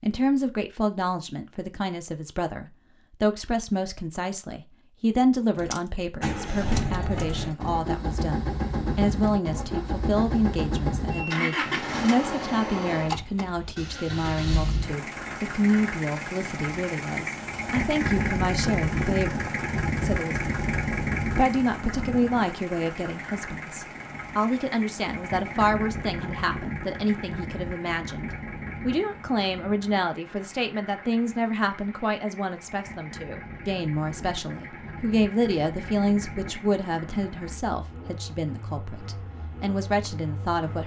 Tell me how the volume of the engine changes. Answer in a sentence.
The volume of the engine goes down.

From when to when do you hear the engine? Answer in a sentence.
The engine can be heard from 5.5 to 40.8 s.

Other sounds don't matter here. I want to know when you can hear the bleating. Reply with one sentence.
You can't hear the bleating here.